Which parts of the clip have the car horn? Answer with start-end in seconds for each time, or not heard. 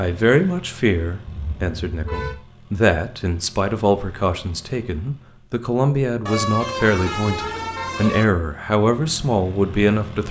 1.2-2.4, 6.2-8.2.